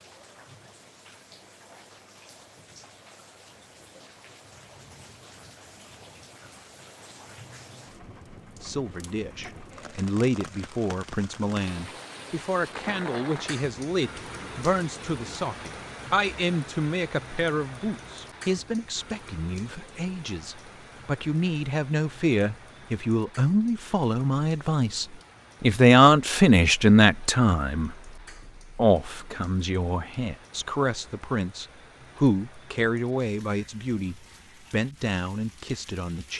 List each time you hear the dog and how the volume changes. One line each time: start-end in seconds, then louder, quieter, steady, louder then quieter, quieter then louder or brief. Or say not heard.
not heard.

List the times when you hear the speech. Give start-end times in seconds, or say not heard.
8.6-27.9, 28.8-36.3.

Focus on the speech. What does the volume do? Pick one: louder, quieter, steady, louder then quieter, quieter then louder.
louder then quieter.